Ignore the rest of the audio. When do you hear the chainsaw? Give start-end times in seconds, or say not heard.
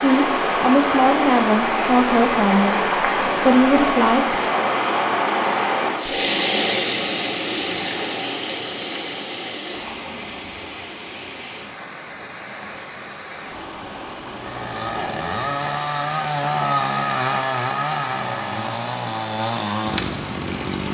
14.3-20.8.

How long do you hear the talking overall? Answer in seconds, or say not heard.
4 s.